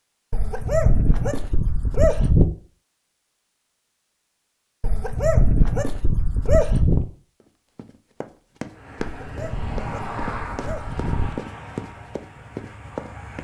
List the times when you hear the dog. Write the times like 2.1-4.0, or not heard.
0.3-2.5, 4.8-7.0, 9.2-11.4.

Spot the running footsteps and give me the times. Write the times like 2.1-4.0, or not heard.
7.4-13.3.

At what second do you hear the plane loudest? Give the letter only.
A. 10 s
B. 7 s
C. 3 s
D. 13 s
A.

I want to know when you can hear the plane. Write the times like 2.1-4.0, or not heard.
8.6-13.3.